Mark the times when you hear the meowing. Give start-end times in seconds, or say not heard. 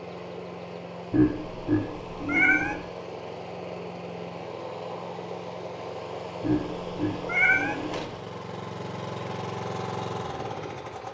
2.2-2.8, 7.2-7.8.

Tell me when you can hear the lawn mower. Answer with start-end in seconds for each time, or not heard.
0.0-11.0.